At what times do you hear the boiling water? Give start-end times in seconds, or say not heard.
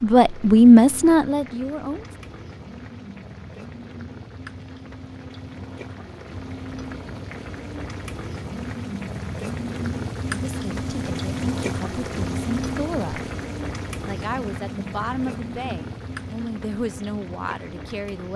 0.0-18.3.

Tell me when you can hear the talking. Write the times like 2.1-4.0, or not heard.
0.0-2.0, 10.2-13.3, 14.1-18.3.